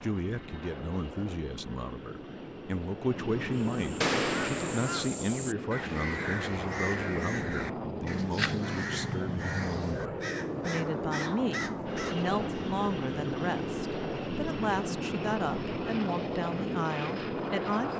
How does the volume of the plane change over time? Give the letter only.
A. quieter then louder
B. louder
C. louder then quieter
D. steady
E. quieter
B.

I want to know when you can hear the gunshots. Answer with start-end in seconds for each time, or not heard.
4.0-5.0.